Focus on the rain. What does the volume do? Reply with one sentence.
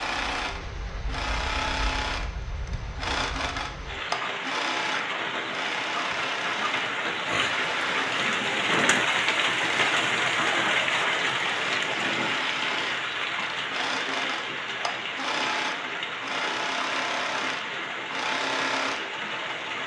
The loudness of the rain goes up, then down.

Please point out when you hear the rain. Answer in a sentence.
You can hear the rain from 0.0 to 19.8 s.